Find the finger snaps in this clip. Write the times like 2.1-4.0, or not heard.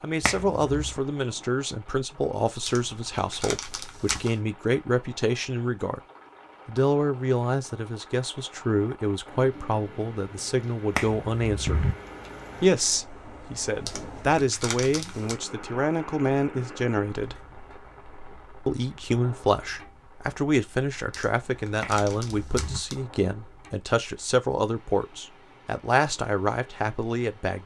0.2-1.0, 10.9-11.9, 21.8-22.8.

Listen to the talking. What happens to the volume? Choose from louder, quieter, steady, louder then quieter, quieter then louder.
steady.